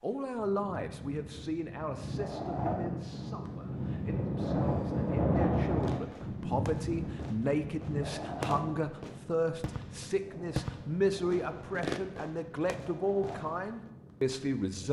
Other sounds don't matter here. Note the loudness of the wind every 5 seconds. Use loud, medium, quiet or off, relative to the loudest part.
loud, loud, quiet.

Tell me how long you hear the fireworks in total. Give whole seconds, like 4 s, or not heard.
8 s.